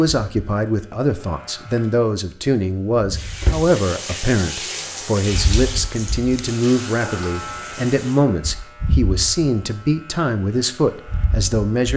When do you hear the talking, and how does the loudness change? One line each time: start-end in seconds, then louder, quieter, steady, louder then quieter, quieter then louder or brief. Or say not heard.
0.0-11.9 steady.